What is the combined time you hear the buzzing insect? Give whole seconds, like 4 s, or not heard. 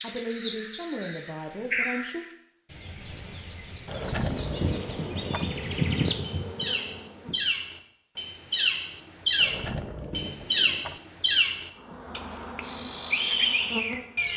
6 s.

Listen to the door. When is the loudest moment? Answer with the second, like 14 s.
4 s.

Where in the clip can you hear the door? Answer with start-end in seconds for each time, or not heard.
3.9-5.5, 9.3-11.0.